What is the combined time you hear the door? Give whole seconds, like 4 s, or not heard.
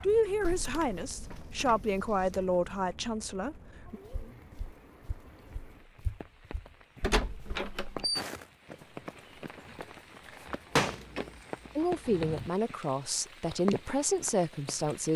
5 s.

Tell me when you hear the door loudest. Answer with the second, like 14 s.
11 s.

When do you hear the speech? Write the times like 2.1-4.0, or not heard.
0.0-4.0, 11.8-15.1.